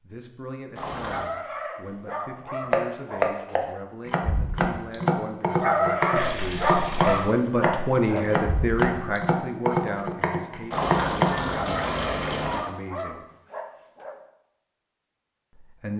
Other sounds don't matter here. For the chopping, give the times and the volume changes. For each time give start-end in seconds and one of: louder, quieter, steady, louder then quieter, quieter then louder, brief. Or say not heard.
2.6-11.4 steady.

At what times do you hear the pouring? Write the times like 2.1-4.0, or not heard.
0.8-1.4, 6.2-7.3, 10.7-12.6.